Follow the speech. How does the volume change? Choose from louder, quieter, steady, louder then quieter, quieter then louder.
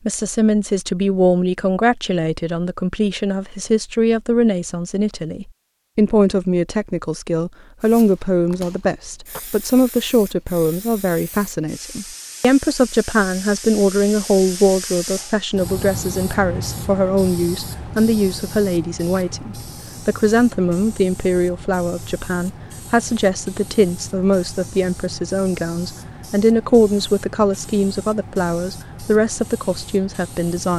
steady.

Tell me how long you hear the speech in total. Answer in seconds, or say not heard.
31 s.